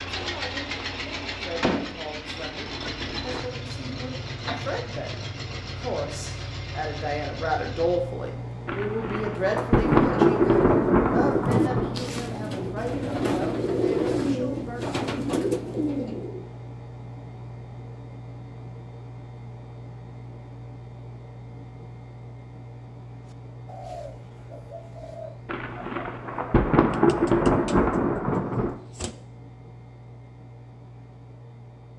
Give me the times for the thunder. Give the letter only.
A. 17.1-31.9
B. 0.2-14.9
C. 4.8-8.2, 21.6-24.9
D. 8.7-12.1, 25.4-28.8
D.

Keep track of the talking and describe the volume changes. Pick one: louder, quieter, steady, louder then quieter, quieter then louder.
louder then quieter.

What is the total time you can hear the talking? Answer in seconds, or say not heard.
15 s.